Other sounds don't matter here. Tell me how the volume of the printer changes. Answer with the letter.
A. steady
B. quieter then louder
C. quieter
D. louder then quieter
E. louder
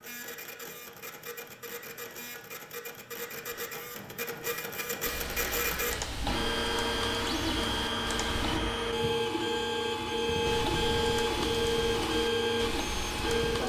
E.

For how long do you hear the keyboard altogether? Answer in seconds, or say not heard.
7 s.